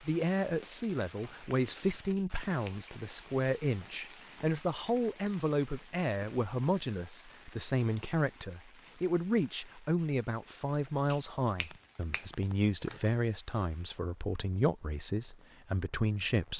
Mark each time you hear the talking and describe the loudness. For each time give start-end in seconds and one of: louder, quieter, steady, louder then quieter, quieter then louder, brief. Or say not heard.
0.1-16.5 steady.